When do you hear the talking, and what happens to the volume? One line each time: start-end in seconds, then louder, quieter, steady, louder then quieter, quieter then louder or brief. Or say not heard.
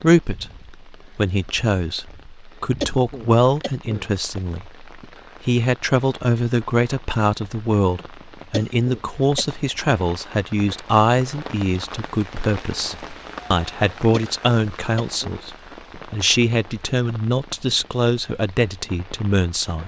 0.0-19.8 steady.